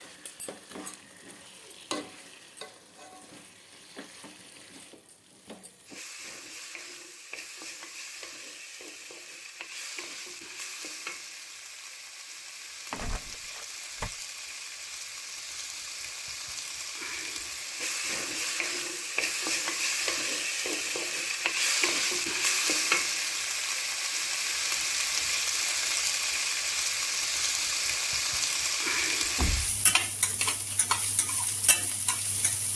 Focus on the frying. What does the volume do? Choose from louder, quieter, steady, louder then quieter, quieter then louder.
louder.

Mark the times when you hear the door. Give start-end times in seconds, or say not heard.
12.9-14.1, 29.4-30.4.